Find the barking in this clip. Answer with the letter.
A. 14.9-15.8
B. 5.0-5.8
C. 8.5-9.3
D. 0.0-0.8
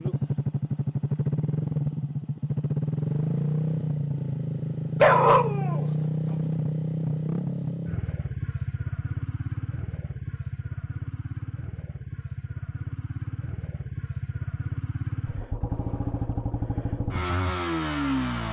B.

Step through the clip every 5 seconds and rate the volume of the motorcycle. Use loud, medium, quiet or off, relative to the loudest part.
loud, loud, medium, loud.